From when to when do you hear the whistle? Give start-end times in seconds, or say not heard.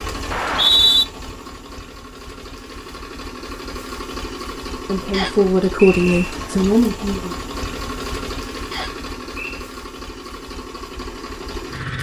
0.3-1.1, 5.1-6.3, 8.7-9.7.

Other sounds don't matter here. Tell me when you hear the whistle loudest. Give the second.
1 s.